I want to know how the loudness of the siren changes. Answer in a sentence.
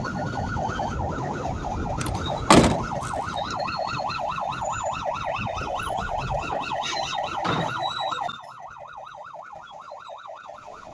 The loudness of the siren goes down.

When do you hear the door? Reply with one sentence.
You can hear the door from 2.0 to 3.1 s and from 6.5 to 7.8 s.